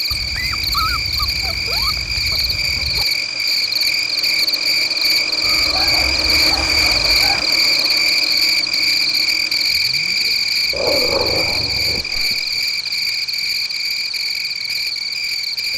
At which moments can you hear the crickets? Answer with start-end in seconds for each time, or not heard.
0.0-15.7.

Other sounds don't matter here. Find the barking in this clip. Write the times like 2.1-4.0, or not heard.
0.1-3.0, 5.4-7.5, 10.7-12.6.